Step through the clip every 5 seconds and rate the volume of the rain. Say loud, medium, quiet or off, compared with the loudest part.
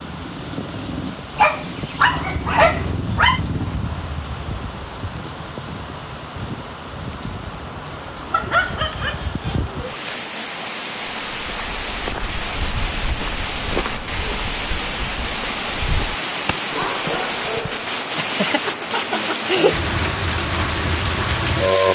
medium, medium, medium, loud, loud.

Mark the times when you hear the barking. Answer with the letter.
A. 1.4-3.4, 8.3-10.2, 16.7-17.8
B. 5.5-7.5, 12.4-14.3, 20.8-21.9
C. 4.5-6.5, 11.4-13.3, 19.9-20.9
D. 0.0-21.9
A.